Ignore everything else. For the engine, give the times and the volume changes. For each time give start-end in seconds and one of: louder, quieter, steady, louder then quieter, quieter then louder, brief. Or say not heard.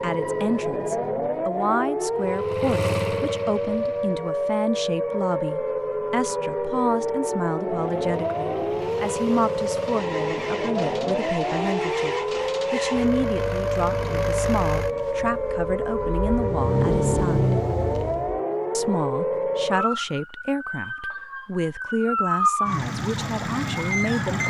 2.1-4.2 brief
7.7-18.4 louder.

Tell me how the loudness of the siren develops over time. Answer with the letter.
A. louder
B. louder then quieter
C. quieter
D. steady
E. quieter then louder
D.